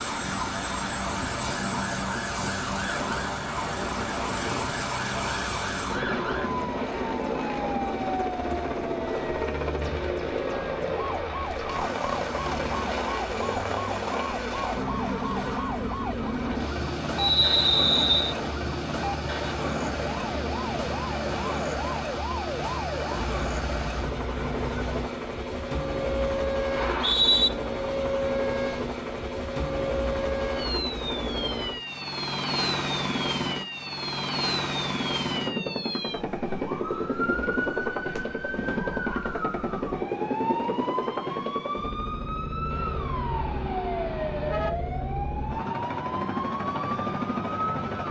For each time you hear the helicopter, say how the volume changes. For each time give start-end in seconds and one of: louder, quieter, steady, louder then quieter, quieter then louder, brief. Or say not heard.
0.0-48.0 steady.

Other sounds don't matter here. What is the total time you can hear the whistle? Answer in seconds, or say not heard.
2 s.